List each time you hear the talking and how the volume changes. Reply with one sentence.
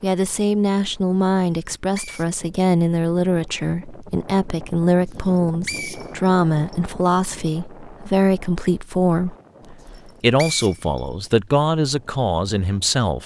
You can hear the talking from 0.0 to 13.2 s, at a steady volume.